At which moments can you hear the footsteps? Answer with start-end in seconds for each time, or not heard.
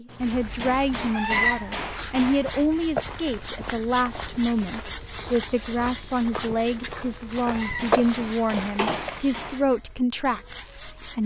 0.1-9.4.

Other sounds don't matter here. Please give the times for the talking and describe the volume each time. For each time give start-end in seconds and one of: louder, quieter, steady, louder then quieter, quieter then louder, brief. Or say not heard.
0.0-11.2 steady.